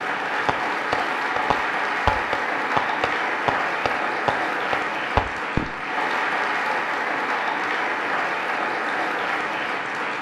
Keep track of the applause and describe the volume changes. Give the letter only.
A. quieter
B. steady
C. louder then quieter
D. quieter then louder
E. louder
B.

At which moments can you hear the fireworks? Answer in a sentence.
You can hear the fireworks from 0.5 to 5.8 s.